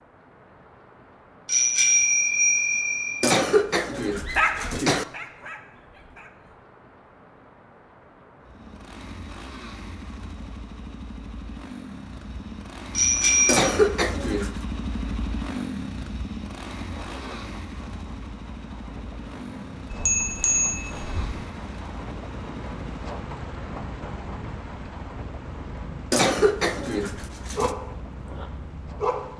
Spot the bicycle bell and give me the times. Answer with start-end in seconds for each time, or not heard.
1.4-3.4, 12.9-13.6, 19.9-21.4.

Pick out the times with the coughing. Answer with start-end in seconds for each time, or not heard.
3.2-5.0, 13.4-14.5, 26.1-27.8.